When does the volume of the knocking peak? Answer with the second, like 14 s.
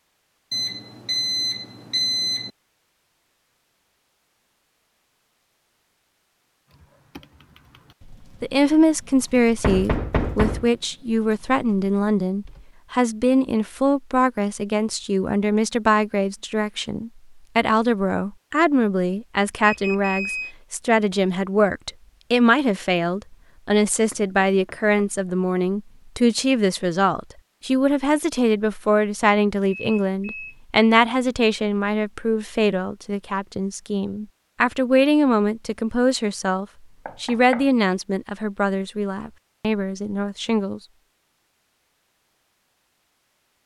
10 s.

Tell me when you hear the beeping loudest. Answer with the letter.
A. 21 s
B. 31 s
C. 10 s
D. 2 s
D.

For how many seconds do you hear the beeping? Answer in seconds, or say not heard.
4 s.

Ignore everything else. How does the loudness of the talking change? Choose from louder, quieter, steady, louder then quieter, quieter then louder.
steady.